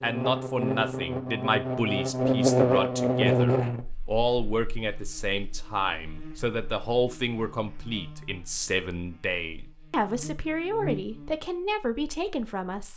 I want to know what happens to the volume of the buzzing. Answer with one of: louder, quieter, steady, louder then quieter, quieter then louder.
quieter then louder.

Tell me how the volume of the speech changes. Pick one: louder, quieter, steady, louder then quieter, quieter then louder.
steady.